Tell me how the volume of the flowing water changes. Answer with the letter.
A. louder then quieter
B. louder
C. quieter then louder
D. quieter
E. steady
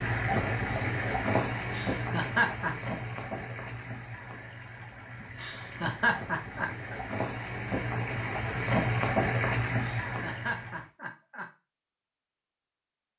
C.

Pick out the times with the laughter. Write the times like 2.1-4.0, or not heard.
1.7-2.8, 5.2-7.0, 9.8-11.4.